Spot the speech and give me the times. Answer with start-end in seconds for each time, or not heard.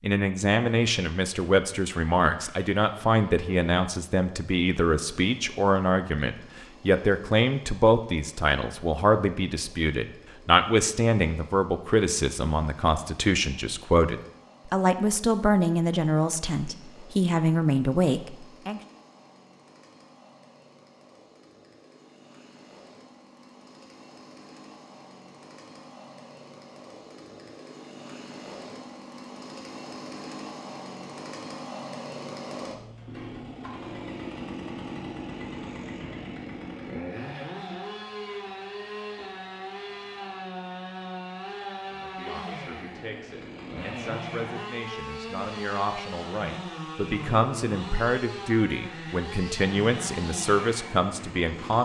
0.0-18.8, 41.9-51.7.